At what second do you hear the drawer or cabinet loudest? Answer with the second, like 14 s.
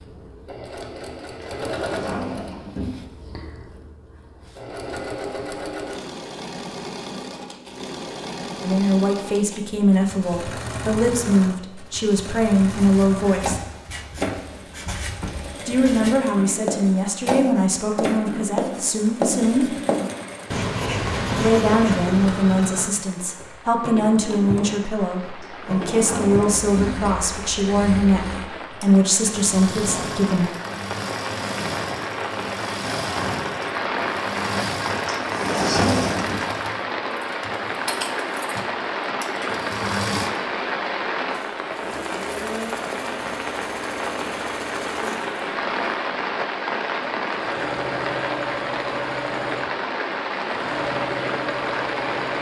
36 s.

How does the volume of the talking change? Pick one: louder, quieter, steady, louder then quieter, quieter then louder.
steady.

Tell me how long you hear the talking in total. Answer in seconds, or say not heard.
18 s.